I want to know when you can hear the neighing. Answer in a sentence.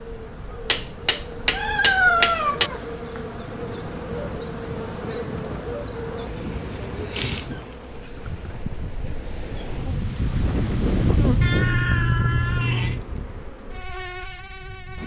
The neighing can't be heard in this clip.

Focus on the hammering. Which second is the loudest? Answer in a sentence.
The loudest moment of the hammering is at 2 seconds.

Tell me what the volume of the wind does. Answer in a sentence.
The volume of the wind goes up, then down.